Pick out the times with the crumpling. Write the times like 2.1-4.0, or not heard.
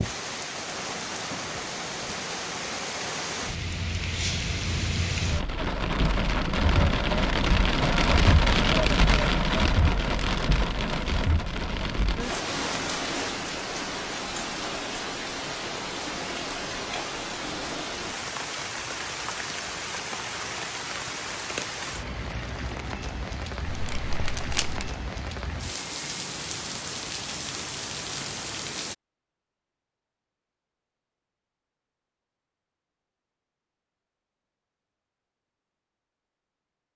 23.7-24.9.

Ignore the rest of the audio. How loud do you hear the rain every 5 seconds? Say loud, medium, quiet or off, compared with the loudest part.
medium, loud, medium, medium, medium, medium, off, off.